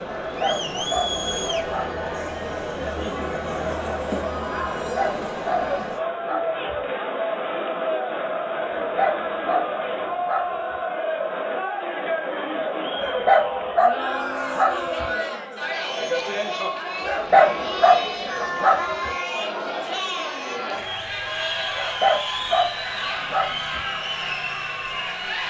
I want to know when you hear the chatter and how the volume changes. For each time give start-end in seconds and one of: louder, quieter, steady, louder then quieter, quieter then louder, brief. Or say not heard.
0.0-25.4 steady.